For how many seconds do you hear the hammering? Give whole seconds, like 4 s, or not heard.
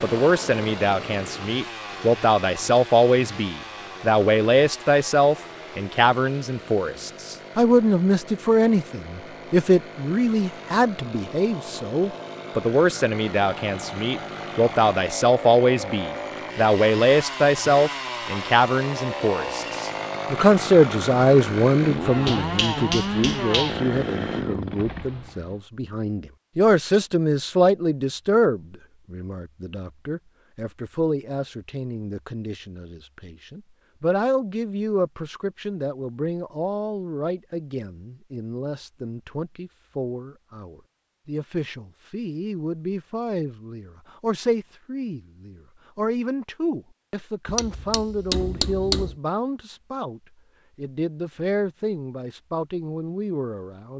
3 s.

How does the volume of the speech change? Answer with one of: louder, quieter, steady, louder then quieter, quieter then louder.
quieter.